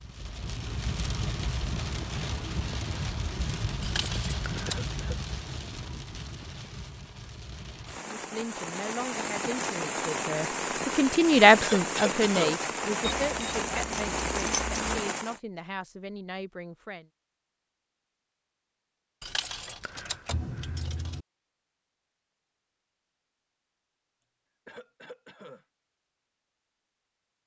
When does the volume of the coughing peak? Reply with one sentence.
The loudest moment of the coughing is at 12 seconds.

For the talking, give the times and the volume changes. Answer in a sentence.
The talking can be heard from 8.2 to 17.1 s, getting louder then quieter.